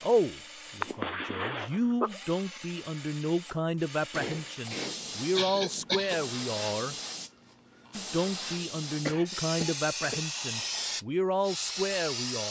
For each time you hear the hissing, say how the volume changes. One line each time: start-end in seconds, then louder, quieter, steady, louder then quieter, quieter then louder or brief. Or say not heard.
4.6-12.4 louder.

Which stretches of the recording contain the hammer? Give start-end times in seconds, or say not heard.
4.1-6.0.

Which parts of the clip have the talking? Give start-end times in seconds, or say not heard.
0.0-7.0, 8.0-12.4.